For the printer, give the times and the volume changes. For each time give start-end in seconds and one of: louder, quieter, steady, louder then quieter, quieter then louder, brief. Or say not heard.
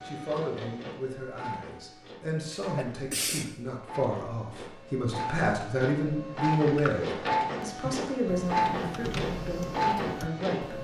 0.0-10.7 louder.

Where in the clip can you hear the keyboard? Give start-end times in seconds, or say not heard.
7.8-10.7.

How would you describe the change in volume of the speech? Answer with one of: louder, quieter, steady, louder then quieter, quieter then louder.
louder then quieter.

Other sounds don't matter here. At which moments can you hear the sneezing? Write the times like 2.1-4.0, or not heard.
2.5-3.5, 6.7-7.2.